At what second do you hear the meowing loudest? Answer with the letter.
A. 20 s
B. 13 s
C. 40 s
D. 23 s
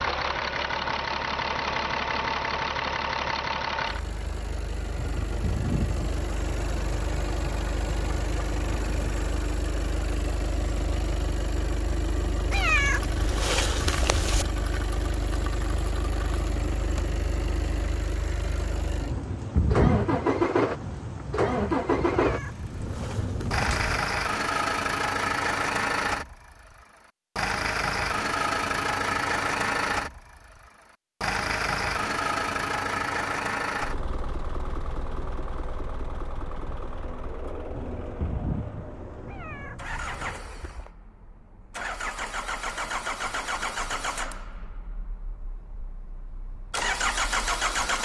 B.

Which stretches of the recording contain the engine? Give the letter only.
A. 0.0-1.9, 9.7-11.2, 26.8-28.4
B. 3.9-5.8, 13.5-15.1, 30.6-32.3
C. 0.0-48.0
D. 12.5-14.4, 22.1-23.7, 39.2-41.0
C.